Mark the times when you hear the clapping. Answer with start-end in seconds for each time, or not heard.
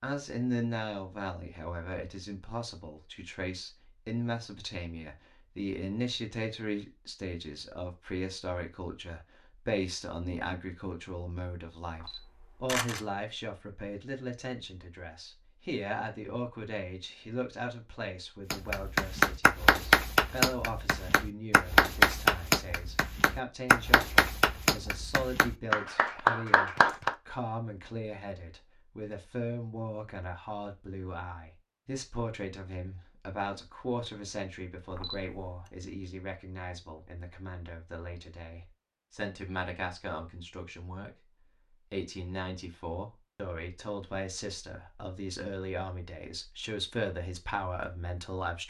18.5-27.1.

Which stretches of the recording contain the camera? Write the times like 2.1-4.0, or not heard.
11.9-13.0, 34.9-35.7.